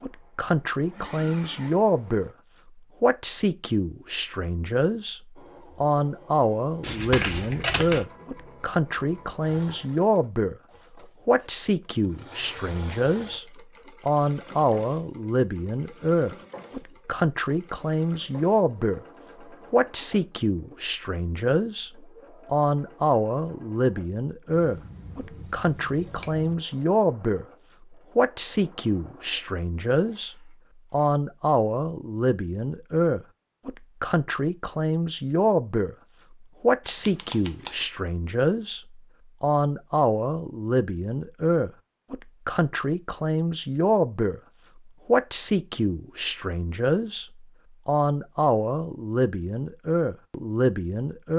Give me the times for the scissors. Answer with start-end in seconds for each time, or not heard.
6.8-8.1, 24.6-26.6, 36.9-37.9.